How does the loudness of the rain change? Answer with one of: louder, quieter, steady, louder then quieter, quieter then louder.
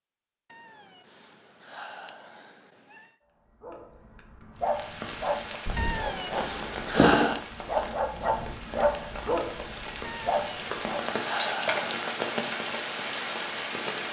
louder.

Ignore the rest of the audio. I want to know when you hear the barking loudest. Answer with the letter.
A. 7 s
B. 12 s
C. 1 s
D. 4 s
A.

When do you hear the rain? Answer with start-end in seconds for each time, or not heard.
4.7-14.0.